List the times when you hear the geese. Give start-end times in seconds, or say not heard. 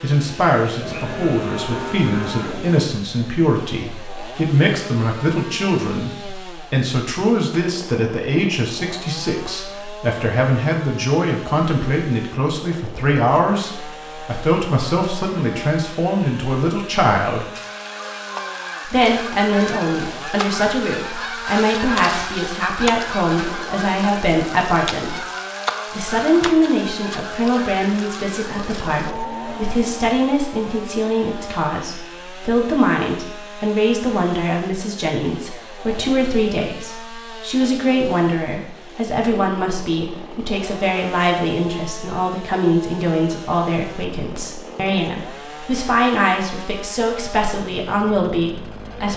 17.6-29.1.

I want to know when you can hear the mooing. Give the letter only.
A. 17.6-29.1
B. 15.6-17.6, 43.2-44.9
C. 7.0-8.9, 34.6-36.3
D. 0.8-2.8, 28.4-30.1
D.